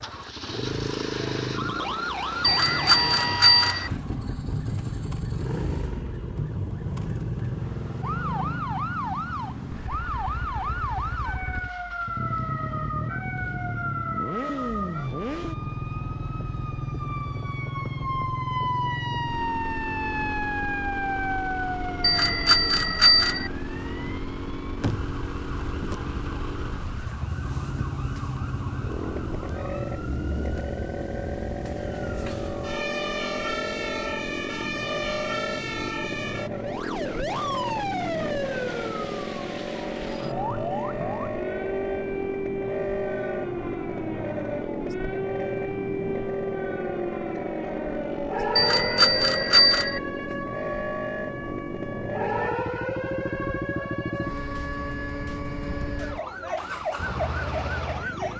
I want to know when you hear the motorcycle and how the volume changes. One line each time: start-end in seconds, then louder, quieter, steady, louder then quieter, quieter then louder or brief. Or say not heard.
0.0-58.3 steady.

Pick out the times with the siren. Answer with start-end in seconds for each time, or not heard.
0.0-58.3.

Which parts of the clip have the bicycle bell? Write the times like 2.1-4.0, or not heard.
2.4-3.9, 22.0-23.5, 48.5-50.0.